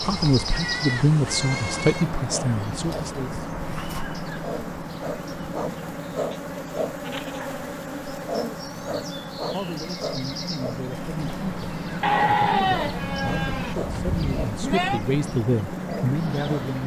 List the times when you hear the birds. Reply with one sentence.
You can hear the birds from 0.0 to 16.8 s.